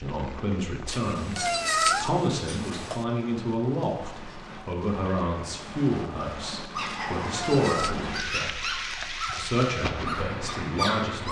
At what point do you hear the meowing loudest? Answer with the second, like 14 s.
2 s.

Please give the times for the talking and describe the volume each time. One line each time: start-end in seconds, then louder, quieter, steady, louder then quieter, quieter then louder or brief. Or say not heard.
0.0-11.2 steady.